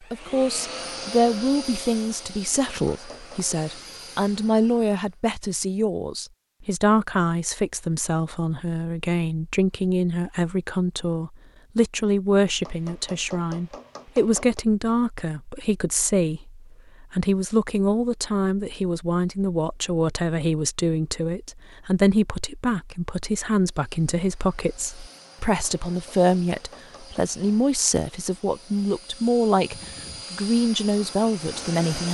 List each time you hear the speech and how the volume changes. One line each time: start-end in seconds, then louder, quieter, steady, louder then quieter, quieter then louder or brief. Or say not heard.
0.1-32.0 steady.